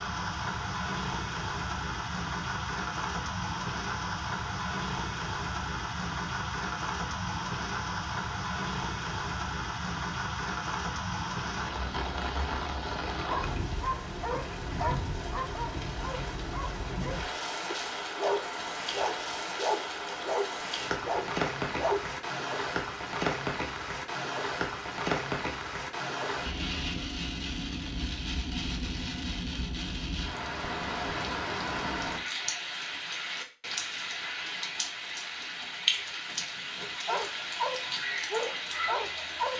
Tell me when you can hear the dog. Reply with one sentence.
You can hear the dog from 13.1 to 22.1 s and from 37.0 to 39.5 s.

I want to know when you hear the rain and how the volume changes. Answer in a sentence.
The rain can be heard from 0.0 to 39.5 s, at a steady volume.